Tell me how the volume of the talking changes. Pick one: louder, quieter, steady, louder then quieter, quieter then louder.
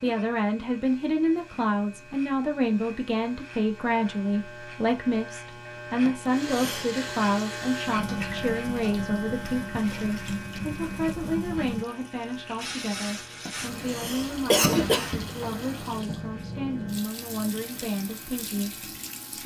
quieter.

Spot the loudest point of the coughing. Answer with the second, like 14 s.
15 s.